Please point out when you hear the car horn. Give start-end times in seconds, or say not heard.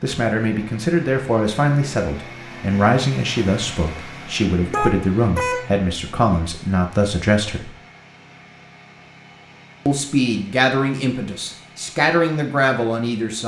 4.7-5.8.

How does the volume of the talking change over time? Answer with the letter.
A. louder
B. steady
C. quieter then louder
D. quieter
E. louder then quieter
B.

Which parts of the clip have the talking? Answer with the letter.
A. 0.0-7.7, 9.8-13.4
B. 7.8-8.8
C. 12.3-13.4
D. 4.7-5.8
A.